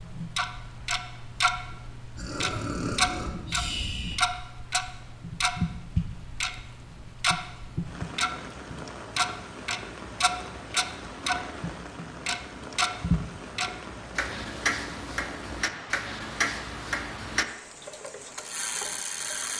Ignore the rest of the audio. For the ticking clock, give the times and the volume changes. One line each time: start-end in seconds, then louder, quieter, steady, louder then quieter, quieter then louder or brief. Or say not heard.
0.1-1.6 brief
2.4-19.5 quieter.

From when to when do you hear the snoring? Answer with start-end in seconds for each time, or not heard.
2.1-4.2.